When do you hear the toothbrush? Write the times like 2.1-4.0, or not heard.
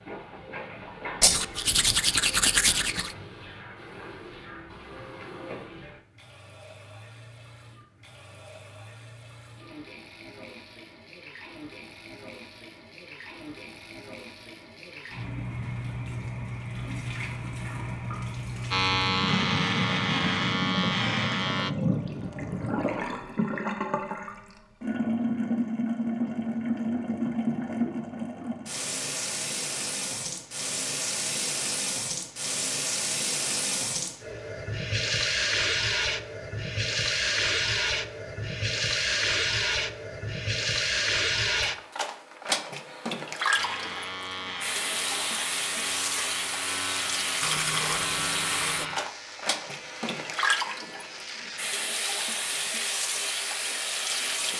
1.2-3.1, 47.4-49.0.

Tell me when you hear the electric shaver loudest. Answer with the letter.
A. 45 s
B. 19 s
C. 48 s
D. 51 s
B.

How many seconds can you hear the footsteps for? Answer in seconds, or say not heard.
not heard.